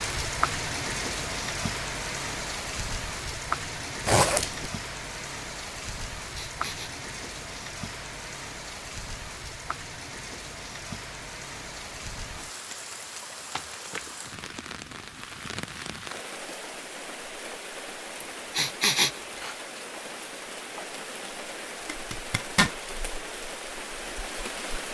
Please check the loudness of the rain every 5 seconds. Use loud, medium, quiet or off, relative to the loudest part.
loud, medium, medium, medium, medium.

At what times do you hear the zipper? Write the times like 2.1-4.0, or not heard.
4.0-4.7, 21.9-22.8.